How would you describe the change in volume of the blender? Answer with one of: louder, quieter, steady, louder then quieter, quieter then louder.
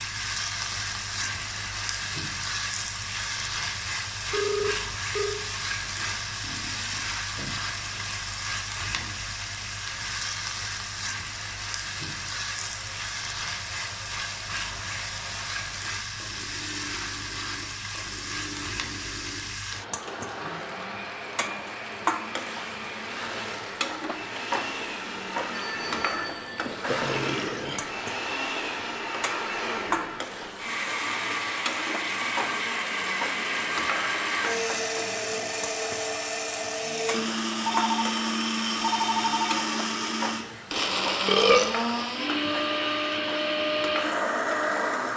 louder.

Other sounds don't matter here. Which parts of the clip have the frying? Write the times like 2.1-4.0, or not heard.
0.0-45.1.